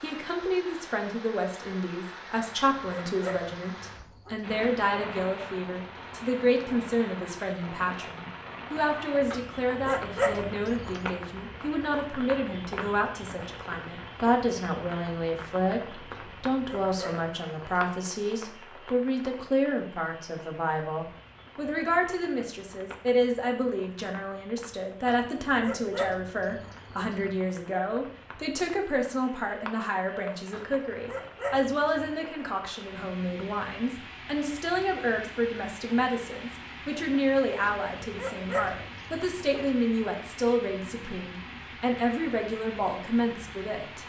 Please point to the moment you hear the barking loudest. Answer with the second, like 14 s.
10 s.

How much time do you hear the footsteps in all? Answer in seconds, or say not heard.
not heard.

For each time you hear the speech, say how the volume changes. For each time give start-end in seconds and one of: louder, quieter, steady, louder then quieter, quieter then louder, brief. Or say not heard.
0.0-44.0 steady.